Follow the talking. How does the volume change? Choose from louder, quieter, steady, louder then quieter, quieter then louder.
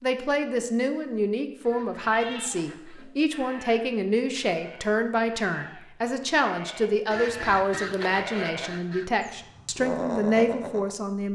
steady.